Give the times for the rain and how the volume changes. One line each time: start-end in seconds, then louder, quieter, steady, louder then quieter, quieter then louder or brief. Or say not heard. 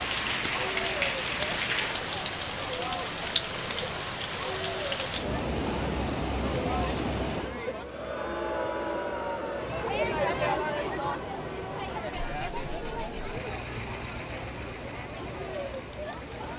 0.0-16.5 quieter.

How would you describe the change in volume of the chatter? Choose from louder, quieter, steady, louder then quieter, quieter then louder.
louder then quieter.